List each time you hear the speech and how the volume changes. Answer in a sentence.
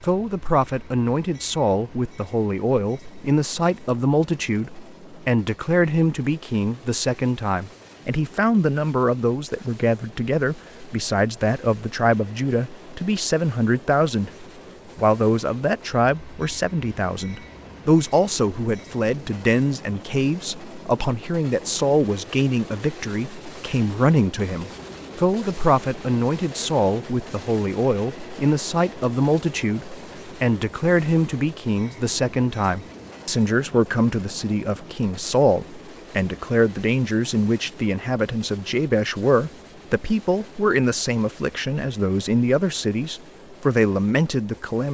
You can hear the speech from 0.0 to 44.8 s, at a steady volume.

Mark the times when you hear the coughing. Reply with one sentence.
The coughing can't be heard in this clip.